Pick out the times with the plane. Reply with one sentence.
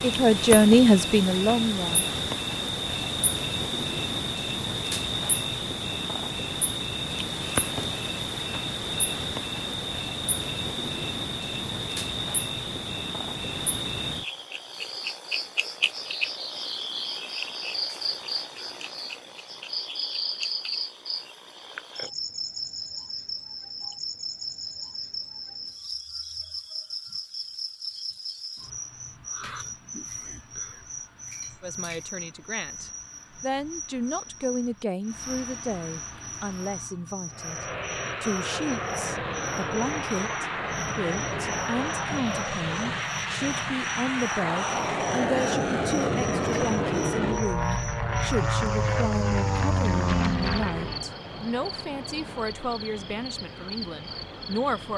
You can hear the plane from 37.3 to 51.0 s.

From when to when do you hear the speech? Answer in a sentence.
The speech can be heard from 0.0 to 2.1 s, from 31.6 to 37.6 s and from 38.2 to 54.9 s.